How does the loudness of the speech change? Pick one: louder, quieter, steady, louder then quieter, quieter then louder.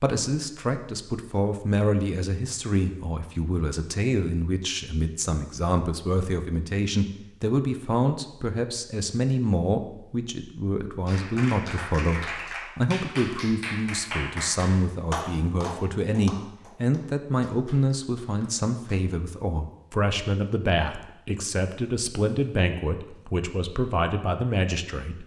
steady.